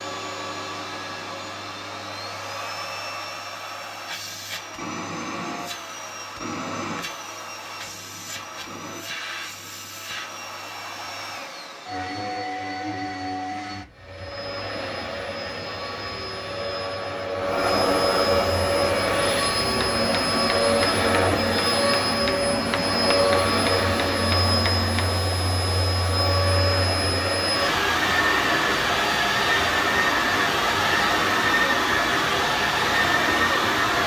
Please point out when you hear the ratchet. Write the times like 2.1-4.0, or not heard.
not heard.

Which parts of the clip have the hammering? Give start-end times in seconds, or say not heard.
19.6-25.2.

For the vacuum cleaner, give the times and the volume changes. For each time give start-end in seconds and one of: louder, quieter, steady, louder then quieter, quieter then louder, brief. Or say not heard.
0.0-34.0 louder.